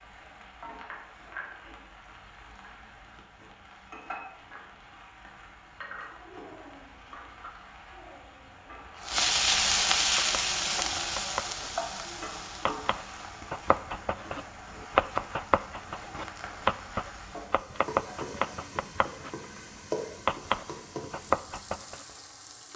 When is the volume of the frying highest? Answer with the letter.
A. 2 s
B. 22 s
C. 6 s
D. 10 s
D.